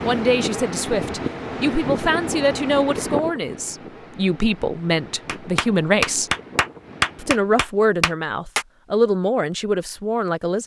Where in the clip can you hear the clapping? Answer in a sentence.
The clapping can be heard from 5.2 to 8.7 s.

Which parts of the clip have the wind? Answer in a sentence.
You can hear the wind from 0.0 to 7.6 s.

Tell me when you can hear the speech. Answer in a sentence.
You can hear the speech from 0.0 to 6.3 s and from 7.2 to 10.6 s.